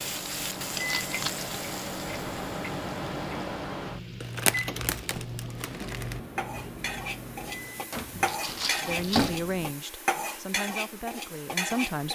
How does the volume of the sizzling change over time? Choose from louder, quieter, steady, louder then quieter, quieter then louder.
quieter then louder.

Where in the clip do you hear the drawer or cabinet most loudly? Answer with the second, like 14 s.
9 s.